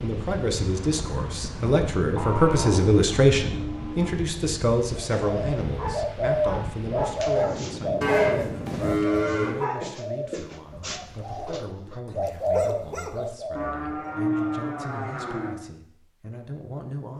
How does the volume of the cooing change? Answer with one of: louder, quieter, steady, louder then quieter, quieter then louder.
quieter then louder.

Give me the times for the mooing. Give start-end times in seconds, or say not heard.
2.1-4.1, 8.0-9.7, 13.6-15.6.